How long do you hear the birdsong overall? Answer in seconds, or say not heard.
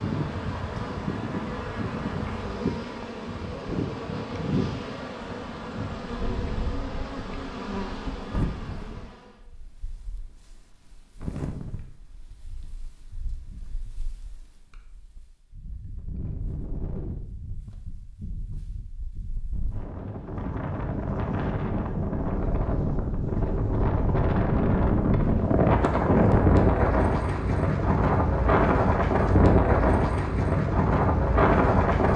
not heard.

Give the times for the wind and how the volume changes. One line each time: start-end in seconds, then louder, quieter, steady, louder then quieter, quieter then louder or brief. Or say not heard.
0.0-32.1 quieter then louder.